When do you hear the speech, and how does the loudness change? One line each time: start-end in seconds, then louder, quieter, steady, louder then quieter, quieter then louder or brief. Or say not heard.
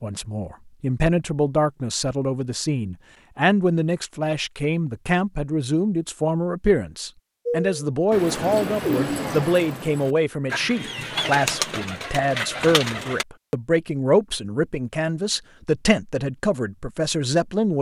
0.0-17.7 steady.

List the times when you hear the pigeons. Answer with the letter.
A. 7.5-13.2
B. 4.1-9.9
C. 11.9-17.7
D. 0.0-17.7
A.